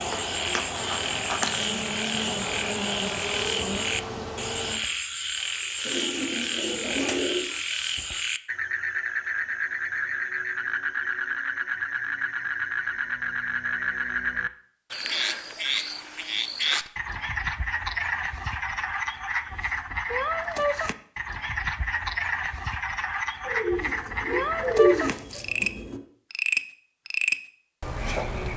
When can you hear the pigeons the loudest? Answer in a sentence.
The loudest moment of the pigeons is at 25 seconds.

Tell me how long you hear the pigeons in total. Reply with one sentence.
You can hear the pigeons for 4 seconds altogether.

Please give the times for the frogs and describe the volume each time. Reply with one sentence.
You can hear the frogs from 0.0 to 28.5 s, at a steady volume.